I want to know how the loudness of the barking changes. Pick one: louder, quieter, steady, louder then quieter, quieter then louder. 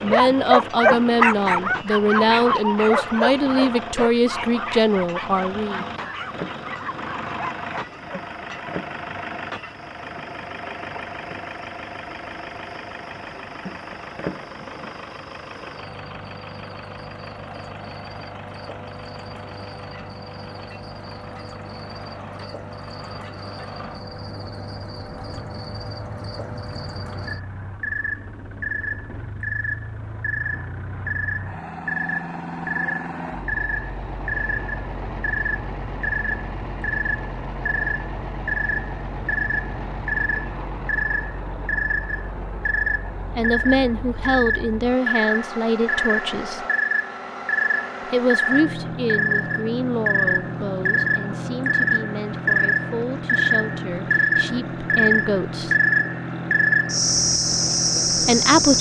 quieter.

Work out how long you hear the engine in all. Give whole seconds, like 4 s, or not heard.
59 s.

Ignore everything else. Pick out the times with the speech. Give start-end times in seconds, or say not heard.
0.0-5.8, 43.4-46.6, 48.0-55.8, 58.2-58.7.